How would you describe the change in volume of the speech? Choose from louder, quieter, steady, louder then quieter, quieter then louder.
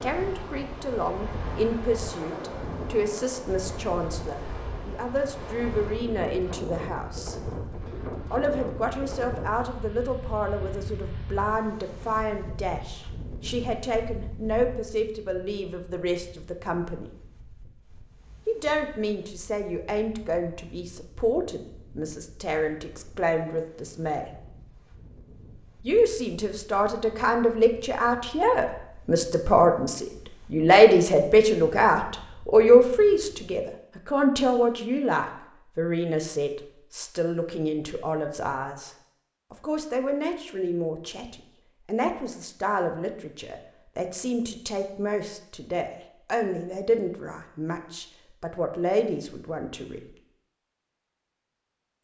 louder then quieter.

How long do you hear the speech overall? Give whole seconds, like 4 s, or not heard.
46 s.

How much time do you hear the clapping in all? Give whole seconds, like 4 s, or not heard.
not heard.